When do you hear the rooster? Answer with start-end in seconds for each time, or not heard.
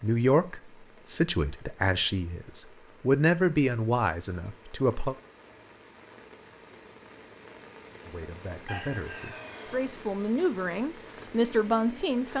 8.7-9.8.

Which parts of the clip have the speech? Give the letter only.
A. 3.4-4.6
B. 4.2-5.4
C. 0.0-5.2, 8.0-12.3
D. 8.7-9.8
C.